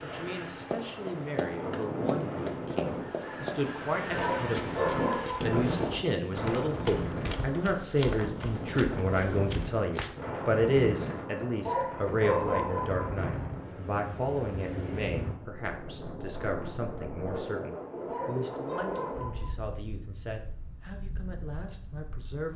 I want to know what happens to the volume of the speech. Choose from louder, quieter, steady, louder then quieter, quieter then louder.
louder then quieter.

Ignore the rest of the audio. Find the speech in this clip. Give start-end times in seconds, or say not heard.
0.0-22.5.